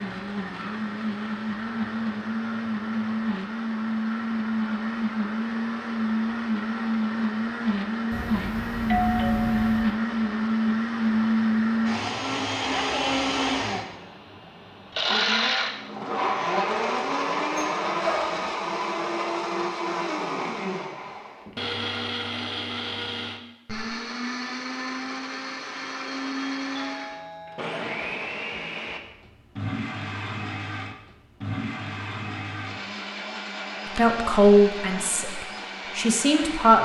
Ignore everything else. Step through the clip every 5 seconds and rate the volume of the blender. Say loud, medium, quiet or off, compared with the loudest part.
loud, loud, loud, loud, medium, medium, medium, medium.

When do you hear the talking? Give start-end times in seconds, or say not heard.
34.0-36.7.